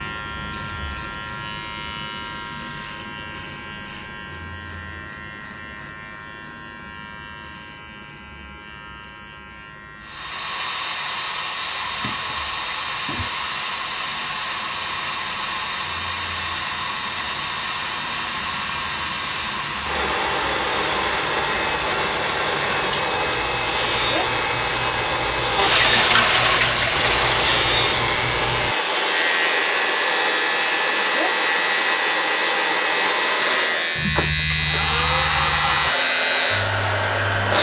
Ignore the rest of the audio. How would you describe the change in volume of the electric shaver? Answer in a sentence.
The loudness of the electric shaver goes down, then up.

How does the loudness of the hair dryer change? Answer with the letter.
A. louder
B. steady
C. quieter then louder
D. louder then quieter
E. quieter
B.